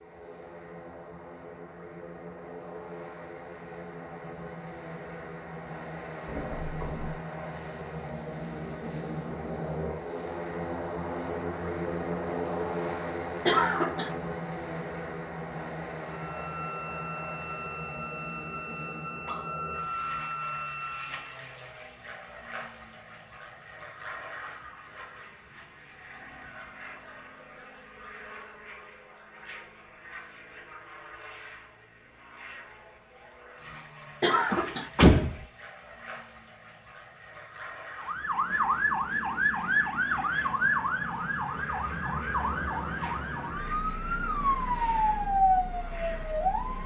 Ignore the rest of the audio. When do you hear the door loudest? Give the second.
35 s.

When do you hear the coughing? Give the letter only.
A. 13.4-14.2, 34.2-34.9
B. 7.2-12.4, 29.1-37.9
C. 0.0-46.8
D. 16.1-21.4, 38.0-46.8
A.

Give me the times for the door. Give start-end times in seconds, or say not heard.
6.2-7.2, 34.5-35.5.